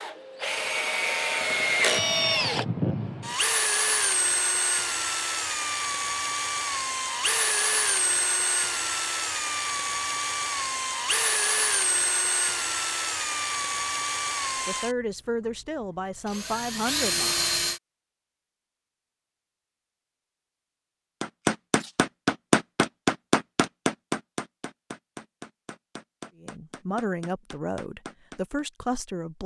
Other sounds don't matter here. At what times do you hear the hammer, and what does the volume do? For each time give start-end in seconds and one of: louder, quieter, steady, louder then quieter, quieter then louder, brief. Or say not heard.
21.2-28.6 quieter.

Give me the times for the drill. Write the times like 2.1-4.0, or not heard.
0.0-14.9, 16.2-17.8.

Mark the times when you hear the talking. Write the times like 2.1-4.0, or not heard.
14.7-17.5, 26.4-29.4.